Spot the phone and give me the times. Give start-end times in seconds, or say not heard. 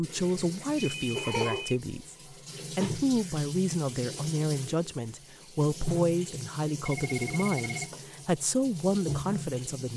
0.8-1.8, 6.8-7.9.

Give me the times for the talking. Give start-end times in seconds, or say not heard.
0.0-2.1, 2.8-9.9.